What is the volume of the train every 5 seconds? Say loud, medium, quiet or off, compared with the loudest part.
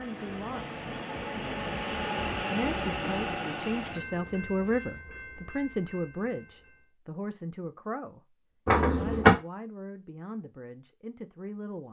loud, quiet, off.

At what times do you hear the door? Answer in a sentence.
The door can be heard from 8.7 to 9.3 s.